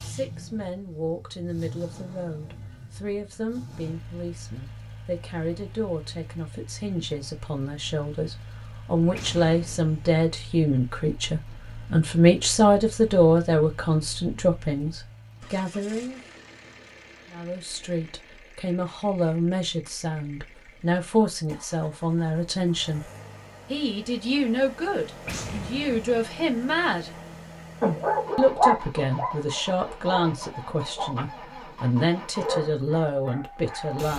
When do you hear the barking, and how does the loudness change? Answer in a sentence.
The barking can be heard from 27.8 to 34.0 s, getting quieter.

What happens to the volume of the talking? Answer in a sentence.
The loudness of the talking goes up.